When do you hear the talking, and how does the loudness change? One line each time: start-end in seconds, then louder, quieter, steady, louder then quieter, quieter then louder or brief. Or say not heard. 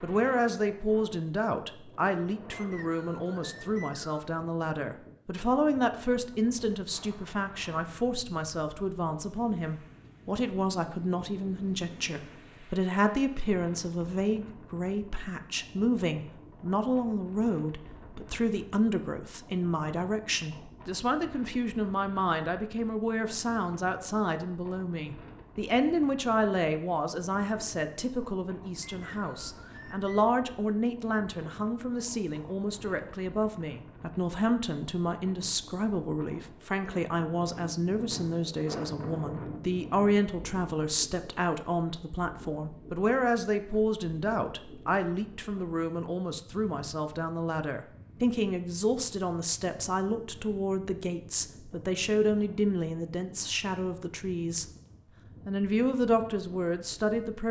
0.0-54.6 steady
55.5-57.4 brief.